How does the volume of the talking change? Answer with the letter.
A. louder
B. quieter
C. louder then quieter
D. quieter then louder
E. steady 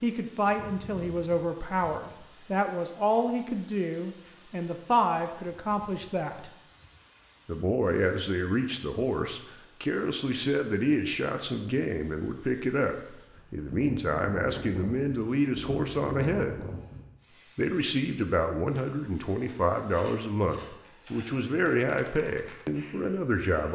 E.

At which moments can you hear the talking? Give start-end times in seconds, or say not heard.
0.0-6.5, 7.5-16.6, 17.6-23.7.